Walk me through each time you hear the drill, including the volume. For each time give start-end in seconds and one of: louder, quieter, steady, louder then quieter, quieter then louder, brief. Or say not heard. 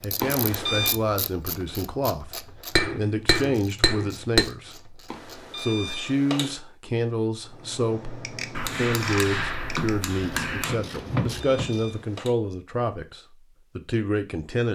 not heard.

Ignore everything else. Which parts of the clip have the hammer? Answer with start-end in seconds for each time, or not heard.
2.8-4.4, 8.6-10.8.